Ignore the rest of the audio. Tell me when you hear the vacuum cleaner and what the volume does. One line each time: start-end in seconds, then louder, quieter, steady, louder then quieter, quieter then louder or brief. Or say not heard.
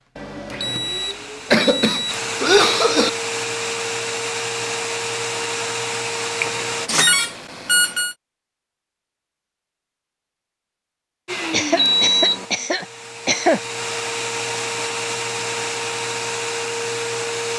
0.0-6.9 louder
11.2-17.5 louder.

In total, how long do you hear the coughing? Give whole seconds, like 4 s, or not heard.
4 s.